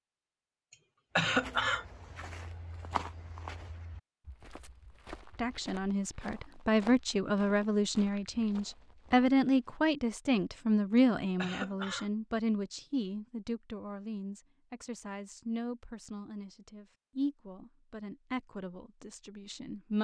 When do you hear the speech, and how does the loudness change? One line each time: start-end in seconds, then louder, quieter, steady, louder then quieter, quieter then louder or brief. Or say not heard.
5.3-19.9 quieter.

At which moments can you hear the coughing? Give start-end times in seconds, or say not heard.
1.1-1.9, 11.3-12.1.